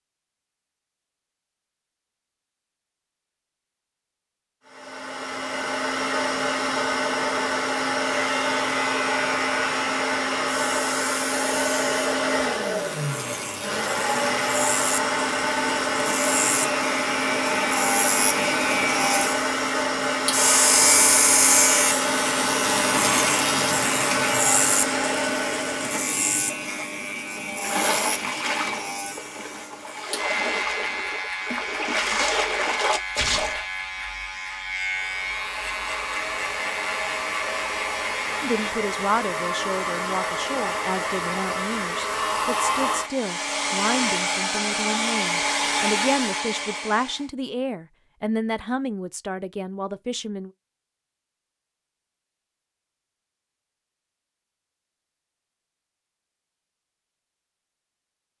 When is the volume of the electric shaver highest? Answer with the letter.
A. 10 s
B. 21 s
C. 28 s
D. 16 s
B.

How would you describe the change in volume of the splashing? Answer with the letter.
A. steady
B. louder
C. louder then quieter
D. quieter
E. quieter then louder
E.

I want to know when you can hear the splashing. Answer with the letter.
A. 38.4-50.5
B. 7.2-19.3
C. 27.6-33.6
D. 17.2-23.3
C.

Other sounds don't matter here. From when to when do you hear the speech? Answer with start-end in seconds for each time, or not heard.
38.4-50.5.